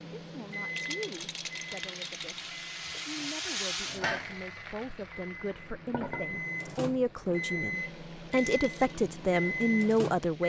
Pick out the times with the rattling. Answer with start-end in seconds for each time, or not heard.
0.7-2.5, 8.3-8.9.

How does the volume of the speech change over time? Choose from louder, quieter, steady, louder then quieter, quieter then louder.
louder.